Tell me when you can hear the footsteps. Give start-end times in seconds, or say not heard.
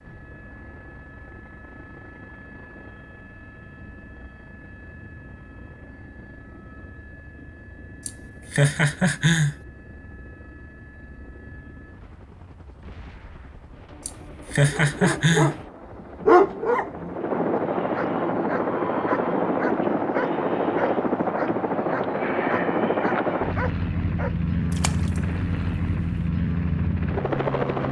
not heard.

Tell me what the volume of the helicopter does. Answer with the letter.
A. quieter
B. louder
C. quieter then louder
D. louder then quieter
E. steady
B.